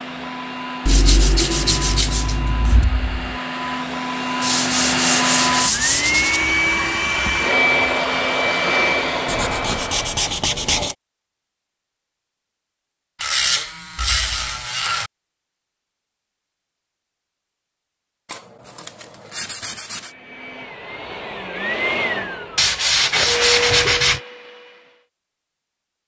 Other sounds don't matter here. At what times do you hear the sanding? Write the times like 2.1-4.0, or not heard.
0.8-2.9, 4.4-6.4, 9.2-10.9, 13.2-15.1, 18.3-20.1, 22.6-24.2.